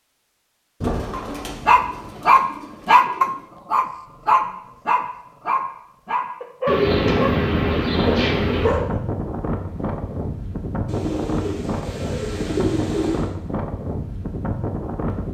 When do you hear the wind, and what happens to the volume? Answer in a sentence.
You can hear the wind from 6.8 to 15.2 s, at a steady volume.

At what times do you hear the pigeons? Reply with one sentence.
You can hear the pigeons from 0.8 to 3.5 s, from 6.7 to 8.7 s and from 10.8 to 13.3 s.